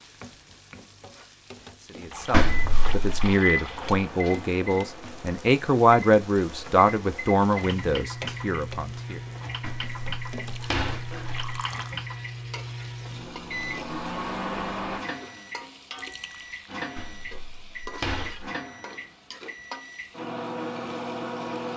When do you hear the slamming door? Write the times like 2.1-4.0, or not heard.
2.3-3.4, 9.6-11.4, 16.9-18.5.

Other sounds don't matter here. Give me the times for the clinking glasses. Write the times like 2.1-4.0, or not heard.
not heard.